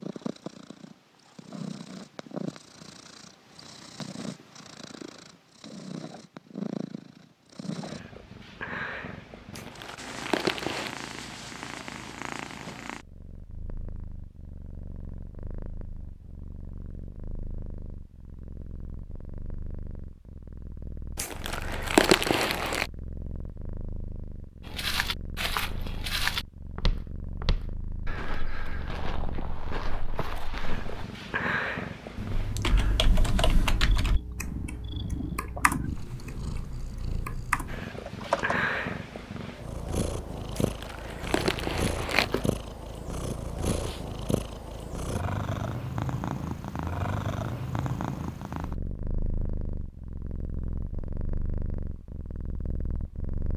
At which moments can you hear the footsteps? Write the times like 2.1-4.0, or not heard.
24.6-31.1.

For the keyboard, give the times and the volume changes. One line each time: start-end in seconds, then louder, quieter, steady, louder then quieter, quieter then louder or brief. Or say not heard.
32.1-38.5 quieter then louder.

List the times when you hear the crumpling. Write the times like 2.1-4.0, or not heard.
9.5-10.9, 21.1-22.9, 40.5-42.5.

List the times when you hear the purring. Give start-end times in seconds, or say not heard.
0.0-53.5.